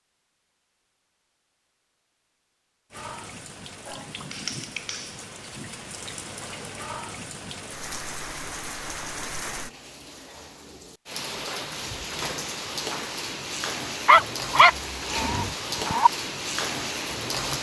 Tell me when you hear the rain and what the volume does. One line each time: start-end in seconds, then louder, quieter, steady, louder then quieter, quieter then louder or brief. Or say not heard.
2.9-17.5 louder.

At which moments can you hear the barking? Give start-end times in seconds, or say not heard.
14.1-16.1.